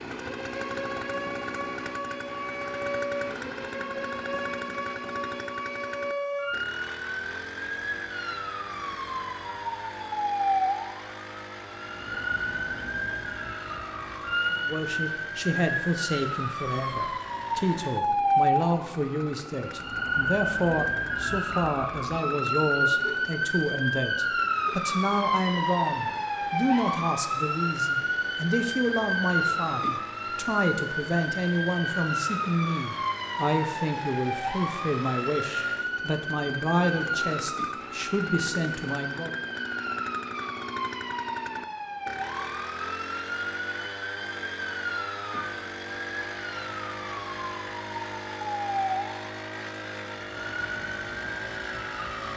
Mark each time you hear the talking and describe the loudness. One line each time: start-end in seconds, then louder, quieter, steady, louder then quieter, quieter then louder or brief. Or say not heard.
14.5-39.4 steady.